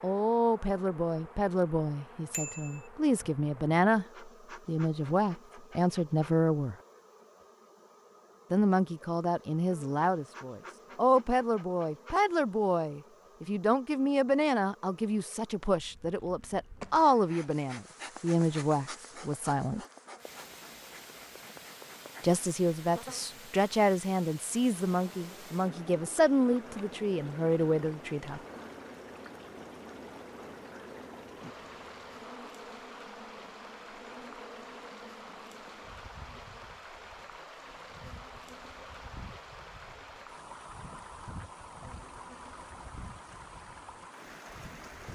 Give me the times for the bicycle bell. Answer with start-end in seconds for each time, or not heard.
2.3-2.9.